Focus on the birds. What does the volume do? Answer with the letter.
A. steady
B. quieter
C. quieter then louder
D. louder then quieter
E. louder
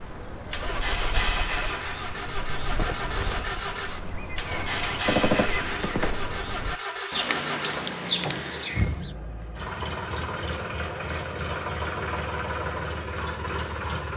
E.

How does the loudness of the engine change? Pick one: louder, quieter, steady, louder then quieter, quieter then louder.
steady.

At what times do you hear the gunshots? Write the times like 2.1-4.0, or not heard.
5.0-6.2.